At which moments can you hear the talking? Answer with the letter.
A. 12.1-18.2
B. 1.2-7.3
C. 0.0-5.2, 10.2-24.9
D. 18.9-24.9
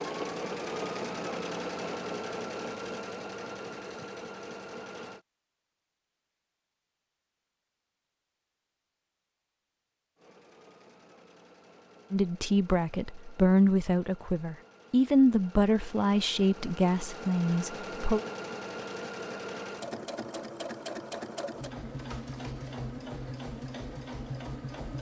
A.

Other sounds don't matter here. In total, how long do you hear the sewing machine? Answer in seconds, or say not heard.
20 s.